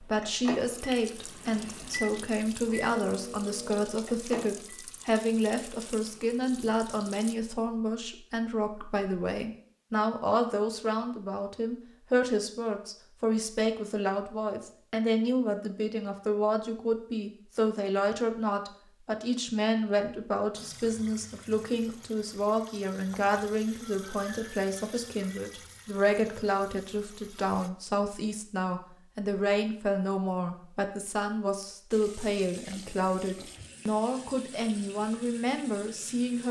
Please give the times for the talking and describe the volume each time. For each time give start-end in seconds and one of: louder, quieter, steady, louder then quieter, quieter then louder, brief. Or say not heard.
0.0-36.4 steady.